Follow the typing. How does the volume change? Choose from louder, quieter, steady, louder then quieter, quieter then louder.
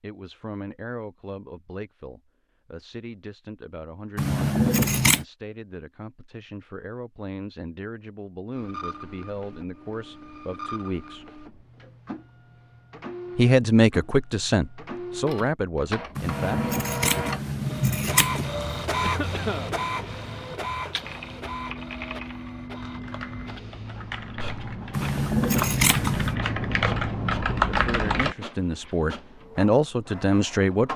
louder.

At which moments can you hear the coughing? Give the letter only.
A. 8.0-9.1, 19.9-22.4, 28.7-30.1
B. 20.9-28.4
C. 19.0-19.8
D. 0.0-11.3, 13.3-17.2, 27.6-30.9
C.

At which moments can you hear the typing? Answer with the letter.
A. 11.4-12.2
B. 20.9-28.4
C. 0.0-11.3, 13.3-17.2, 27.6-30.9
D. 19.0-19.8
B.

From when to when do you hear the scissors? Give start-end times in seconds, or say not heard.
4.2-5.2, 16.1-18.6, 24.9-26.4.